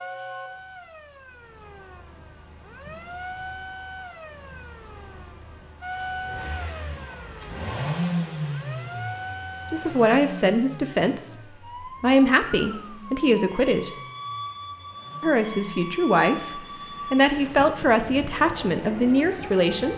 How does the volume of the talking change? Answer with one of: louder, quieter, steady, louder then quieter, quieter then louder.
steady.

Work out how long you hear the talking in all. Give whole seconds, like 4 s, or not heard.
9 s.